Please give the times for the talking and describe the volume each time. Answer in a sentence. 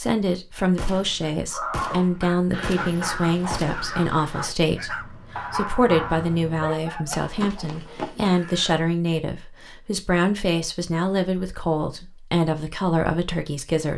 You can hear the talking from 0.0 to 13.9 s, at a steady volume.